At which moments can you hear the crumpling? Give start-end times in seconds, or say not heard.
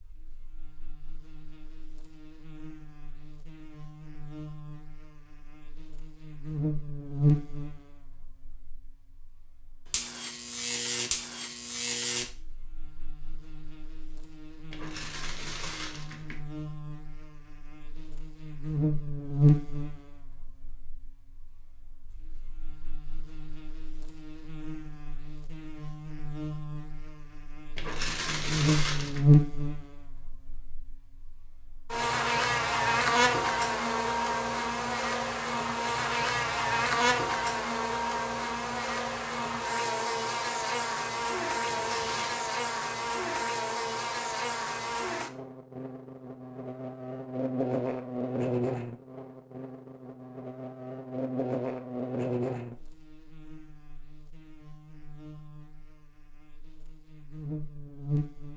14.7-16.4, 27.8-29.2, 41.6-42.4.